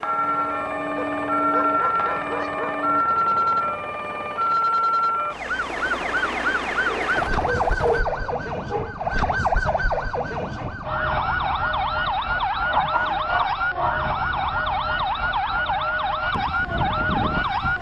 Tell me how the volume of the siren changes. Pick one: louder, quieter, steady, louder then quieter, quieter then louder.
steady.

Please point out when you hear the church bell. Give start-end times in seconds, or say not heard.
0.0-3.0, 16.3-17.7.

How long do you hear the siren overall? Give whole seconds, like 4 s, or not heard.
18 s.